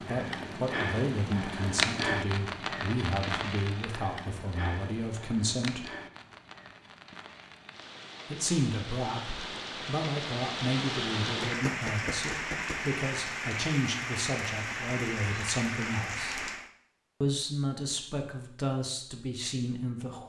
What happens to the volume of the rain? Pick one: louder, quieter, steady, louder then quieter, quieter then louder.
quieter then louder.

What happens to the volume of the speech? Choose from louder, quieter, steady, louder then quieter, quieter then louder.
steady.